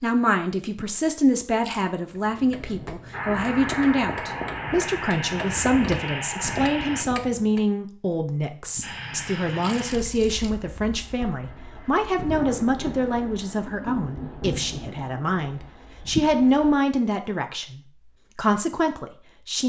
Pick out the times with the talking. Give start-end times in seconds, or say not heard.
0.0-19.6.